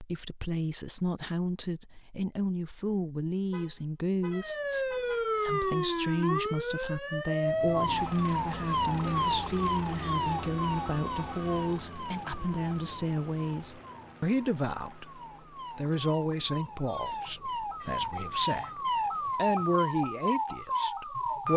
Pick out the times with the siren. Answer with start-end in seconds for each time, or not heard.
4.3-21.5.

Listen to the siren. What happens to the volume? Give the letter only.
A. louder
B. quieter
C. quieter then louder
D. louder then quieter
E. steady
C.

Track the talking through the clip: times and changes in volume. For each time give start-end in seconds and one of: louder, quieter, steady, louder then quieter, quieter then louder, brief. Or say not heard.
0.0-21.5 steady.